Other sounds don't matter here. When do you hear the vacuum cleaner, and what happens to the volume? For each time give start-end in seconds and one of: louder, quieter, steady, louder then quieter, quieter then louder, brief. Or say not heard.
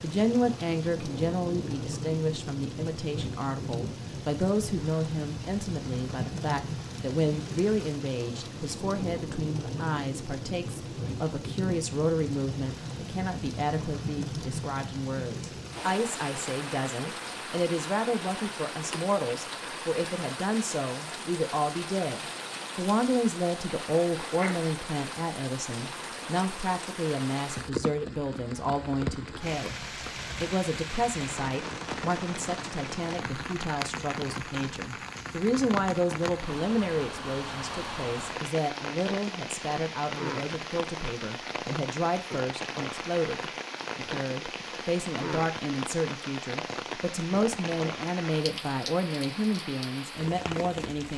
not heard.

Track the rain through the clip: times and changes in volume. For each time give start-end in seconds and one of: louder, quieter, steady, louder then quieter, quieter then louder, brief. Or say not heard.
0.0-51.1 steady.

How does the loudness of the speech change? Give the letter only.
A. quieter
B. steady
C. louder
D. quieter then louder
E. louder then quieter
B.